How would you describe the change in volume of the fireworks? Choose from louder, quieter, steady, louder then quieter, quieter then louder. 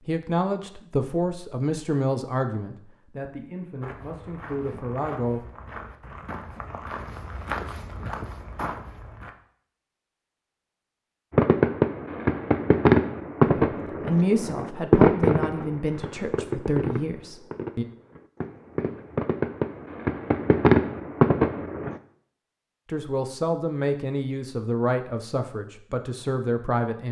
quieter then louder.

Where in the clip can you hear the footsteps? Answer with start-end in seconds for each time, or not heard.
3.8-9.3.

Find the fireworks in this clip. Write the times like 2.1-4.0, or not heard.
11.3-22.0.